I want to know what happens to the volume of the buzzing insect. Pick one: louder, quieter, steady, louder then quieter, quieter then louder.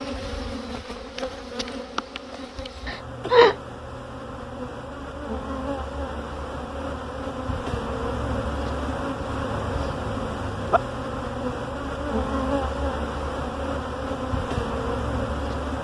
louder.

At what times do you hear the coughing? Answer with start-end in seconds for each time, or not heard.
2.9-3.5.